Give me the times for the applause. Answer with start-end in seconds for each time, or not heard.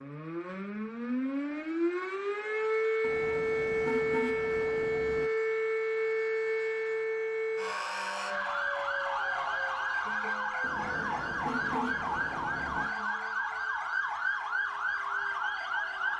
not heard.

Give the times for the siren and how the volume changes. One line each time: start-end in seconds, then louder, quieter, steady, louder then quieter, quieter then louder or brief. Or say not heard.
0.0-16.1 steady.